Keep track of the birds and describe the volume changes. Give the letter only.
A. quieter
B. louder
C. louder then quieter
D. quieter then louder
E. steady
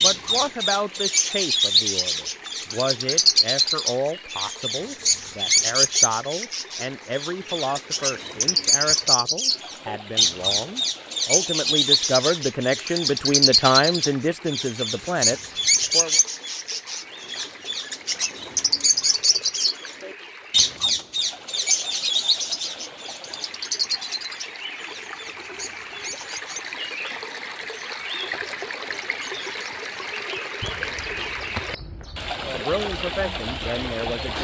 A.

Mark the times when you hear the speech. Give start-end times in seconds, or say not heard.
0.0-16.2, 32.4-34.3.